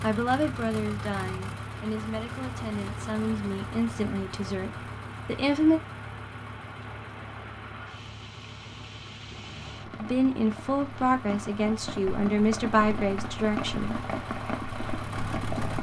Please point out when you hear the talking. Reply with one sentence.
You can hear the talking from 0.0 to 5.8 s and from 10.0 to 13.9 s.